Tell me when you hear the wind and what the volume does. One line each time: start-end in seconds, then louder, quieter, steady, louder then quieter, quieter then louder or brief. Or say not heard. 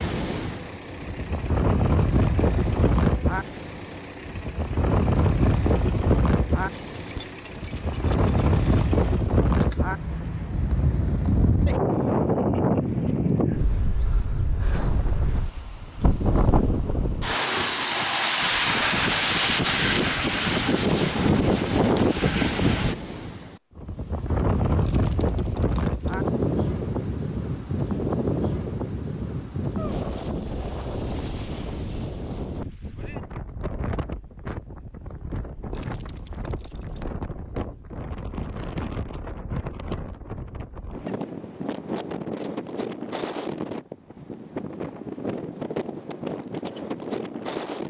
0.0-47.8 quieter.